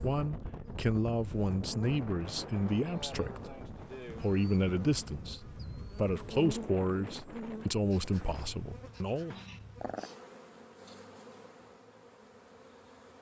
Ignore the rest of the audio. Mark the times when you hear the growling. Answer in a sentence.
The growling can be heard from 9.3 to 10.1 s.